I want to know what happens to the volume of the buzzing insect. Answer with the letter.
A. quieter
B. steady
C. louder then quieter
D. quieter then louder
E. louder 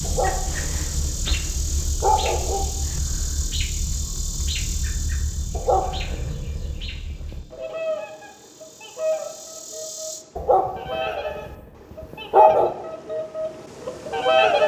D.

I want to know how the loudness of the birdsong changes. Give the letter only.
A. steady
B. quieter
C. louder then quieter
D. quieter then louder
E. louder
E.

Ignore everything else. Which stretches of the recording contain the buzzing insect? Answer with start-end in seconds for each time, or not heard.
0.0-10.2.